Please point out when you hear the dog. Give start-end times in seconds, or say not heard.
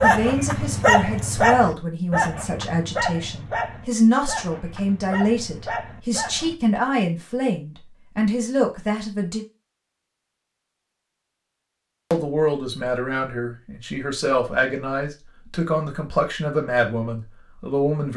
0.0-6.5.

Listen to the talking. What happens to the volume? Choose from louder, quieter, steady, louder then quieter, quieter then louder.
steady.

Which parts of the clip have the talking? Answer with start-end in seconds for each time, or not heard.
0.0-9.4, 12.1-18.1.